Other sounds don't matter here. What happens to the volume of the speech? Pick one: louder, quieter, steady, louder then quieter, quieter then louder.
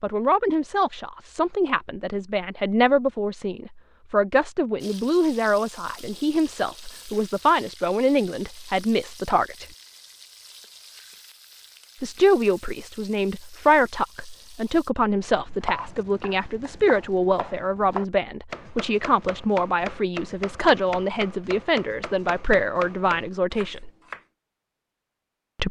steady.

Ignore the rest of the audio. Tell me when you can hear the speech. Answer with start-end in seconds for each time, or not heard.
0.0-9.7, 12.0-23.9.